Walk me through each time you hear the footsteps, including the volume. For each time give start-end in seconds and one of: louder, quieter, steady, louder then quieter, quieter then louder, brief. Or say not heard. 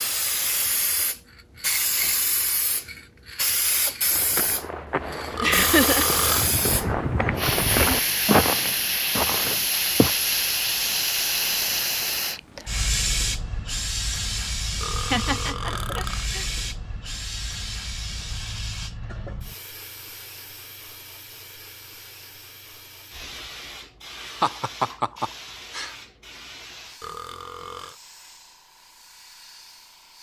4.0-10.2 louder then quieter.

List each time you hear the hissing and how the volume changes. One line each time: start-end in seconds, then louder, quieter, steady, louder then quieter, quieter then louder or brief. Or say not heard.
0.0-30.1 quieter.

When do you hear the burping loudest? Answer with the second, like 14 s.
6 s.